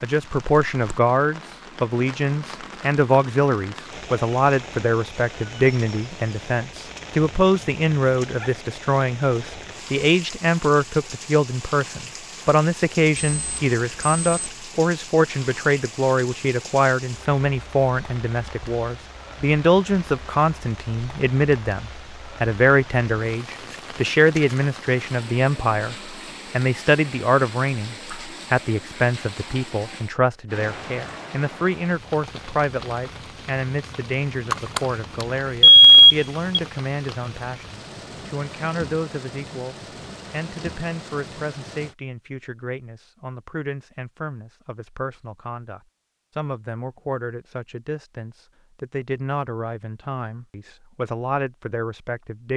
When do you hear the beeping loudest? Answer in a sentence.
The volume of the beeping peaks at 36 seconds.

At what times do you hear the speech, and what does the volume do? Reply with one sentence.
You can hear the speech from 0.0 to 52.5 s, getting quieter.